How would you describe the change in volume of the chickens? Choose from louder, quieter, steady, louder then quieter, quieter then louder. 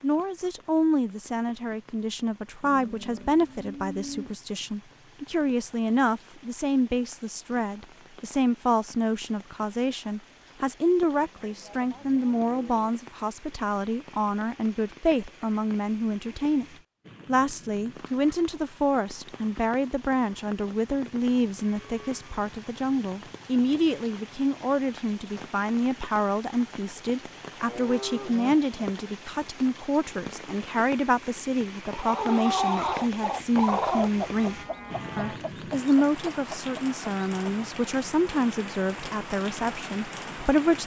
quieter then louder.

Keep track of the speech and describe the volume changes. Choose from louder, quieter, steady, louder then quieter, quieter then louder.
steady.